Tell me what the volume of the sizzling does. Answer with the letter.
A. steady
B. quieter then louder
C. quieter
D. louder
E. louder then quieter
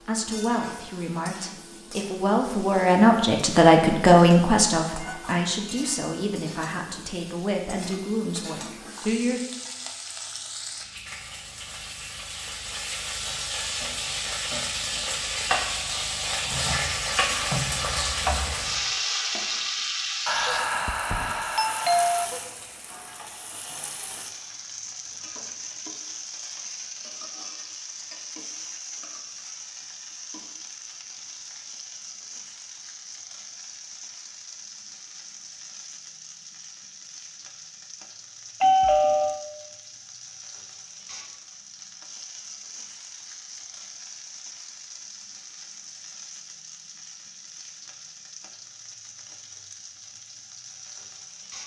E.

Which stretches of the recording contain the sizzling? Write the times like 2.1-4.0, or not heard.
0.0-51.6.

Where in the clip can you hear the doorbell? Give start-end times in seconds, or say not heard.
20.2-22.2, 38.6-39.5.